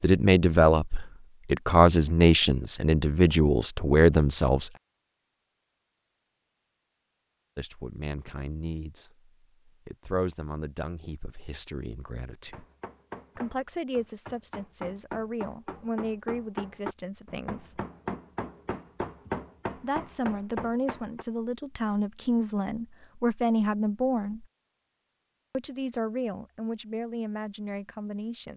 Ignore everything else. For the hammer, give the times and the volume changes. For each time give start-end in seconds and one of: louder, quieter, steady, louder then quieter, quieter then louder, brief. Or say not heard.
12.5-21.2 louder.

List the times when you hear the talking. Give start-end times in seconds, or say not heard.
0.0-4.7, 7.5-12.7, 13.3-17.8, 19.8-24.4, 25.5-28.5.